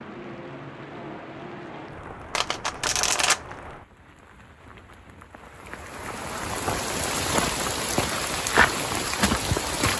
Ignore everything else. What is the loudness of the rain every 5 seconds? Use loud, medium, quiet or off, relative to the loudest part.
quiet, loud.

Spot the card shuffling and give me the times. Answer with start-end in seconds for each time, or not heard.
2.4-3.4.